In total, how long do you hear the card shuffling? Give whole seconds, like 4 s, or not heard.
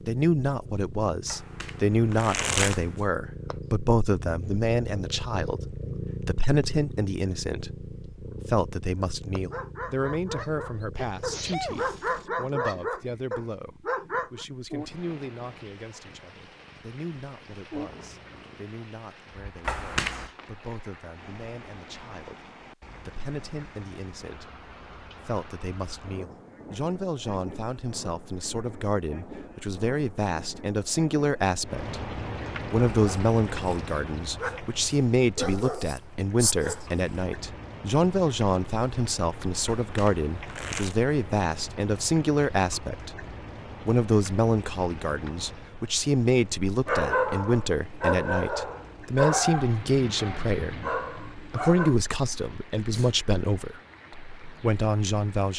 4 s.